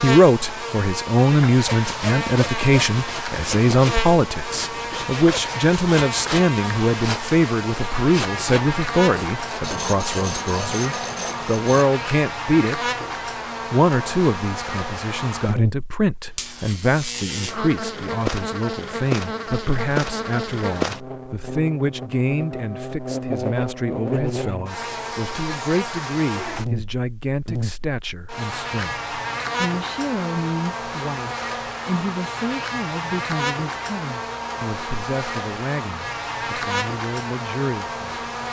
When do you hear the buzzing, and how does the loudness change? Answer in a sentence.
You can hear the buzzing from 0.0 to 38.4 s, at a steady volume.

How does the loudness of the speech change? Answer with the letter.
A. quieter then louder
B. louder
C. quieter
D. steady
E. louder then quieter
C.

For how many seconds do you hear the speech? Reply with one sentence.
The speech can be heard for 37 seconds in total.